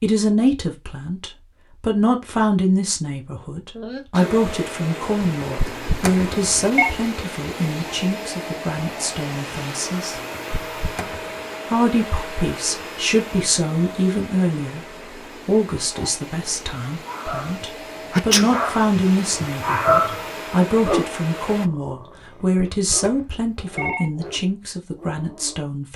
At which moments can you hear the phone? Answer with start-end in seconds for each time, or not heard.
5.2-6.9, 10.2-11.3, 22.2-24.1.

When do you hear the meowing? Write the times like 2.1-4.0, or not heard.
not heard.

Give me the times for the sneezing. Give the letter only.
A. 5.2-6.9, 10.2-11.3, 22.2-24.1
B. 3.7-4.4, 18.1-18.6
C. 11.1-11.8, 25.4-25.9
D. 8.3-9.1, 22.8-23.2
B.